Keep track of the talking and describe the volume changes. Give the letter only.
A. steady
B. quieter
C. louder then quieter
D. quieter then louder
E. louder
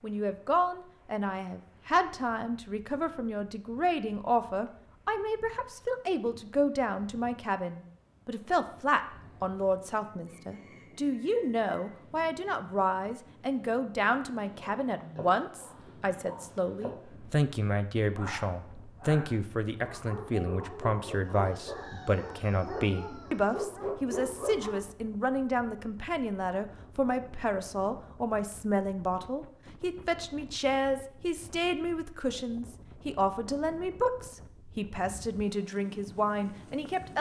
A.